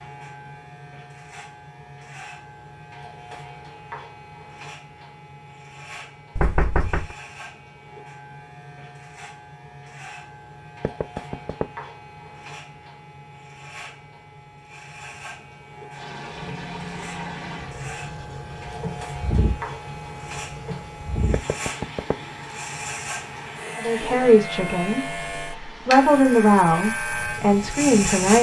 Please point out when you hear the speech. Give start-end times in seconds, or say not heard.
23.8-28.3.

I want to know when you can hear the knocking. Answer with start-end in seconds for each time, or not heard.
6.3-7.2, 10.8-11.7, 21.3-22.1.